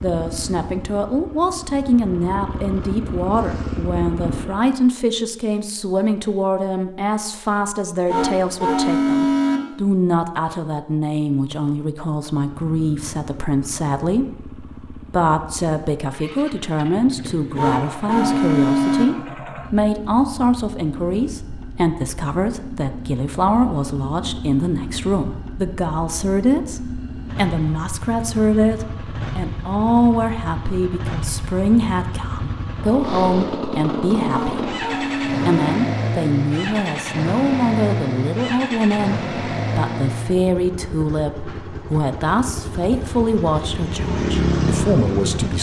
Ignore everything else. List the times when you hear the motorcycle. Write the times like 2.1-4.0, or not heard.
0.0-4.6, 12.3-45.5.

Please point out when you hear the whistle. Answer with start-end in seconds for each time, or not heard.
not heard.